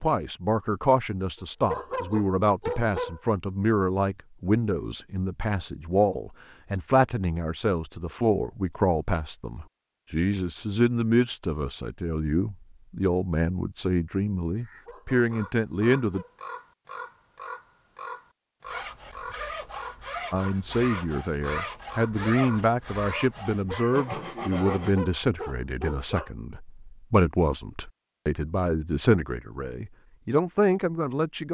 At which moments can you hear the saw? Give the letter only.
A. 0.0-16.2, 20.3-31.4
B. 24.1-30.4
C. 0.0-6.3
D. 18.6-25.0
D.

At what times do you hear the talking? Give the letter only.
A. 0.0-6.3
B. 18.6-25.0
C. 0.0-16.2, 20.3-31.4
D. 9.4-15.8
C.